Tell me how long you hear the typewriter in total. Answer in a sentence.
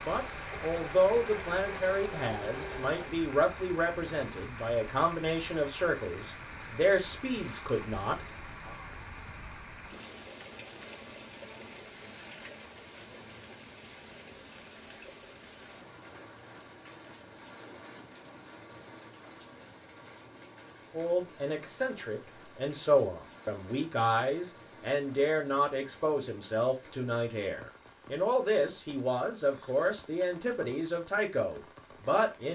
The typewriter can't be heard in this clip.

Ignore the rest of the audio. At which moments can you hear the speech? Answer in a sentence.
The speech can be heard from 0.1 to 8.8 s and from 20.9 to 32.5 s.